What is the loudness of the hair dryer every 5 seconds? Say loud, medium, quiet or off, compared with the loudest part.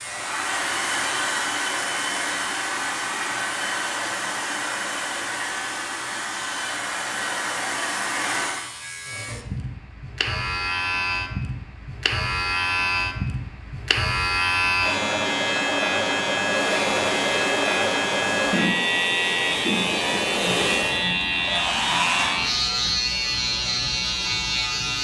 loud, loud, off, loud, loud.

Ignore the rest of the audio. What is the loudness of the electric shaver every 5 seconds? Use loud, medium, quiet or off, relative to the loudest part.
quiet, quiet, loud, loud, loud.